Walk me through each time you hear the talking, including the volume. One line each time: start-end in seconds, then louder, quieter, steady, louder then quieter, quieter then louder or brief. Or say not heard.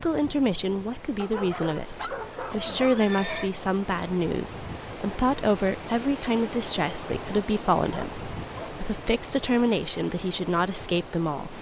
0.0-11.5 steady.